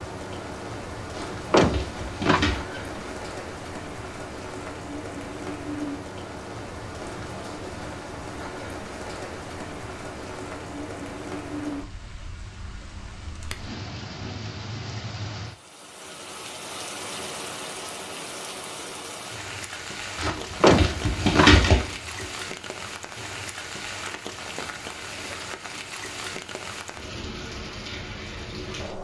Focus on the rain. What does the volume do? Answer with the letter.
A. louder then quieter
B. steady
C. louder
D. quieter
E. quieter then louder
B.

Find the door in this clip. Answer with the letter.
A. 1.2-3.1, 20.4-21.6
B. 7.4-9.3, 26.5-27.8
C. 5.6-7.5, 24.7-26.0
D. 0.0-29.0
A.